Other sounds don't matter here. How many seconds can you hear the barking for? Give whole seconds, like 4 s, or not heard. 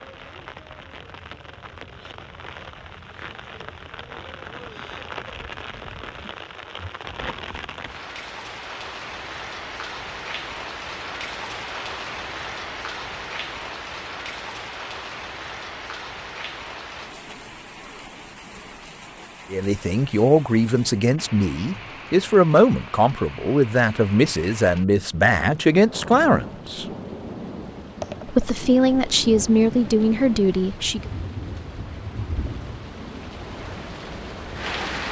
not heard.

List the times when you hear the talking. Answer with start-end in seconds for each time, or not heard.
19.5-26.9, 28.2-31.1.